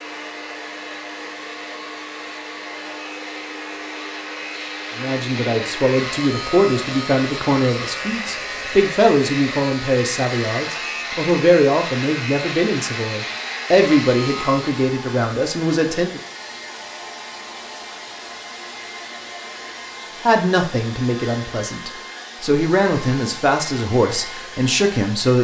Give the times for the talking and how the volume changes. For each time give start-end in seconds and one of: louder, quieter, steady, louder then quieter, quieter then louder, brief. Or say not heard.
5.0-16.2 steady
20.2-25.3 quieter then louder.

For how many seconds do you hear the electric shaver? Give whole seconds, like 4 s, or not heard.
15 s.